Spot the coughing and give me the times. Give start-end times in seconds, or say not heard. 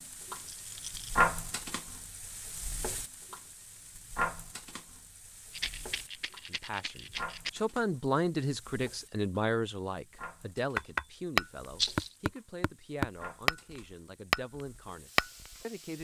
not heard.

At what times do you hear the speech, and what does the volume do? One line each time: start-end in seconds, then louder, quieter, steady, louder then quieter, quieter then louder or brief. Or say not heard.
6.5-16.0 quieter.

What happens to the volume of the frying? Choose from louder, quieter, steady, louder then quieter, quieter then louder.
quieter.